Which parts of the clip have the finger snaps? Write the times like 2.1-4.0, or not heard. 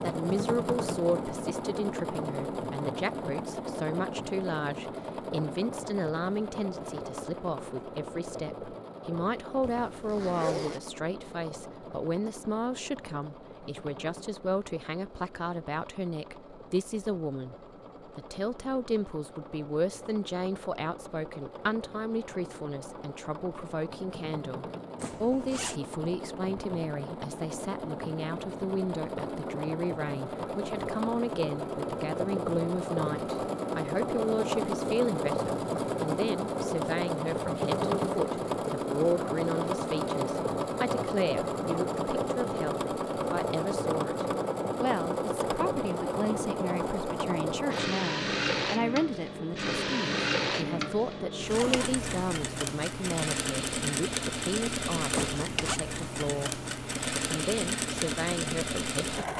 not heard.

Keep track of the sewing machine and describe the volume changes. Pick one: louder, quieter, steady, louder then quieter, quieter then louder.
quieter then louder.